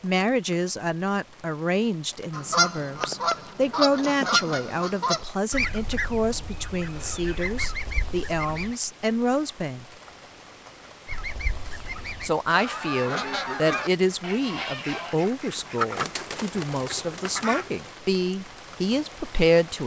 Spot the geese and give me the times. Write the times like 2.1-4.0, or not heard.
2.3-8.8, 11.1-17.9.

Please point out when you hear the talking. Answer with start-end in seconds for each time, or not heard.
0.0-9.8, 12.2-19.8.